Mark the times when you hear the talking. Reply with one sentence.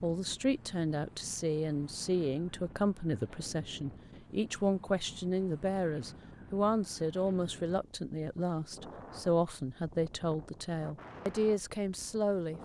You can hear the talking from 0.0 to 12.6 s.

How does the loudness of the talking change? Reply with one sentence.
The volume of the talking stays about the same.